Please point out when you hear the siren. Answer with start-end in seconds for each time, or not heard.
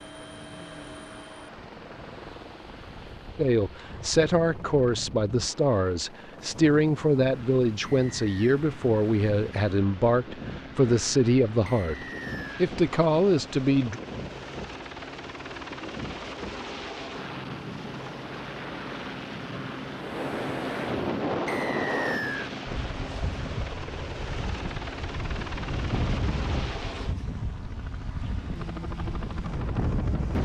not heard.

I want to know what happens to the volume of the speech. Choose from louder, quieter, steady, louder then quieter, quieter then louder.
steady.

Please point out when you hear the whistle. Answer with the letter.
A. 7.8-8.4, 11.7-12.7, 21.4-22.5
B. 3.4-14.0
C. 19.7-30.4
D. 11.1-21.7
A.